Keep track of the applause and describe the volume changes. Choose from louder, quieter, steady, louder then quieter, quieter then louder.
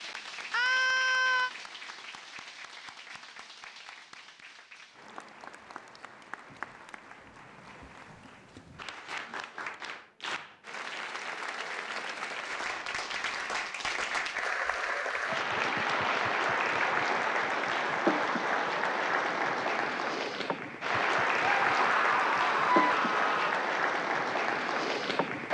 louder.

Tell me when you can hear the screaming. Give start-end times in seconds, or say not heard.
0.5-1.5, 21.4-23.6.